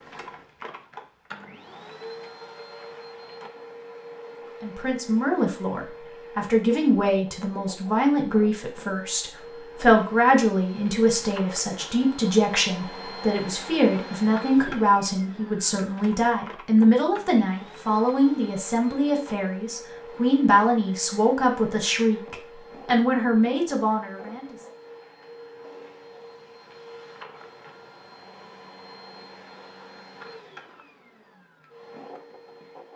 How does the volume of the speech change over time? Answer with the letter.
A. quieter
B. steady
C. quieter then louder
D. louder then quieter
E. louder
B.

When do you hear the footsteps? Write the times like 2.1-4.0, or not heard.
not heard.